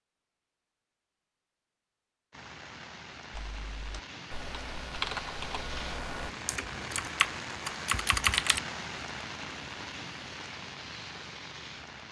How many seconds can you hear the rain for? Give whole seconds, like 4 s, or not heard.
10 s.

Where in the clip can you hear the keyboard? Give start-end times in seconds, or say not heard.
3.3-8.6.